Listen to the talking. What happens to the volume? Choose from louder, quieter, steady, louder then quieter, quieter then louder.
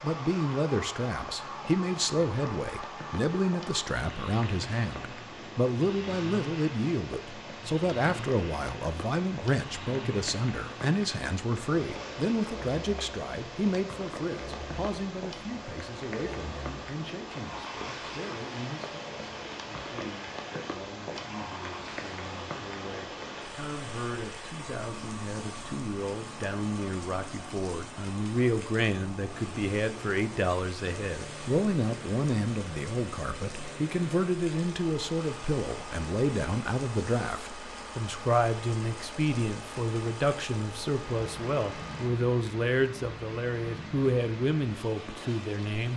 quieter then louder.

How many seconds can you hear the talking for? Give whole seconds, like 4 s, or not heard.
46 s.